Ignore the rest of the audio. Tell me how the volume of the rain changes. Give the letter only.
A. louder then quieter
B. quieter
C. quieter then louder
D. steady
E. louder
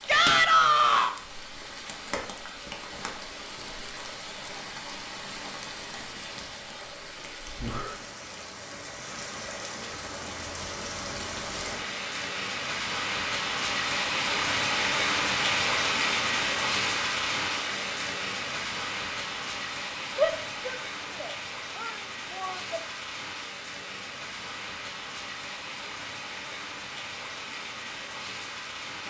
A.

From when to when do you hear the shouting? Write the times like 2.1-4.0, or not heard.
0.1-1.1, 20.1-22.8.